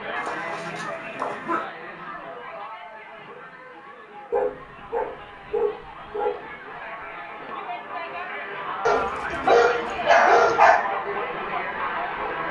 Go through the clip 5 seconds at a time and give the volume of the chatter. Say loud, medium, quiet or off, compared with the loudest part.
medium, medium, loud.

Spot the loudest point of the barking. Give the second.
10 s.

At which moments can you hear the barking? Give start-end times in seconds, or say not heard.
0.1-1.6, 4.3-6.3, 8.8-10.8.